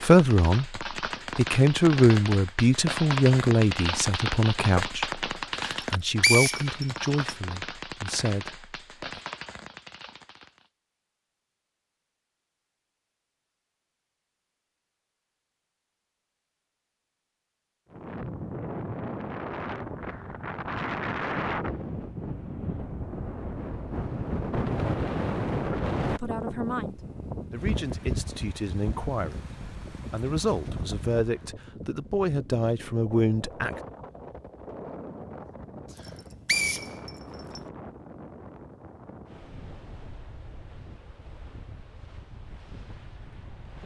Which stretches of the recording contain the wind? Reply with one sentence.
The wind can be heard from 17.9 to 43.8 s.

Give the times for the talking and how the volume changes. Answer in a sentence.
The talking can be heard from 0.0 to 9.2 s, getting quieter; and from 26.1 to 33.8 s, getting louder.